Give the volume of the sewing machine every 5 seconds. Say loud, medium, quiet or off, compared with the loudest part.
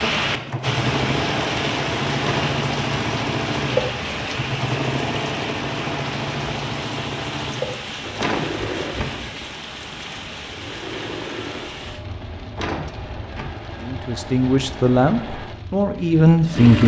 loud, loud, medium, loud.